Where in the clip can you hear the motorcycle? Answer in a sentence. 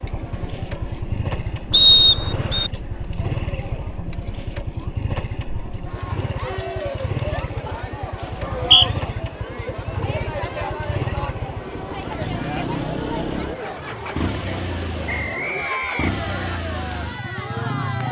The motorcycle can be heard from 0.0 to 18.0 s.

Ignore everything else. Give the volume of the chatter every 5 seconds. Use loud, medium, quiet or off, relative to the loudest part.
medium, loud, loud, loud.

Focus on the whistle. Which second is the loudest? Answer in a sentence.
The volume of the whistle peaks at 2 seconds.